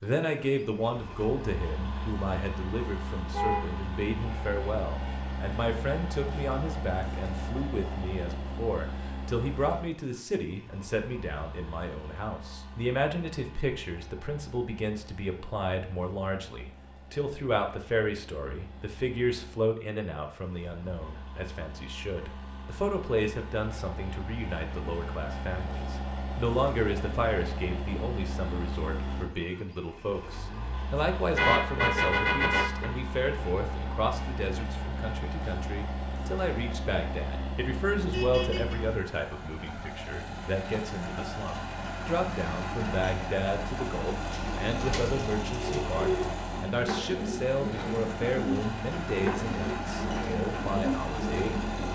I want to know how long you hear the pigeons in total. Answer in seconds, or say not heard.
8 s.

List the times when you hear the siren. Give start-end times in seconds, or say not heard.
not heard.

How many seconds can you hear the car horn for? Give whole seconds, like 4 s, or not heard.
3 s.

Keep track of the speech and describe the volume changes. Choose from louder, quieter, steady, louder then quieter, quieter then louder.
steady.